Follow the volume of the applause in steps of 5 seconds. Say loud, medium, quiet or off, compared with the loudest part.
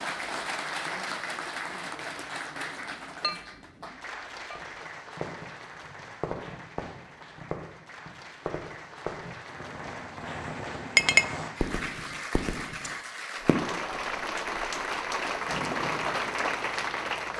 medium, quiet, medium, loud.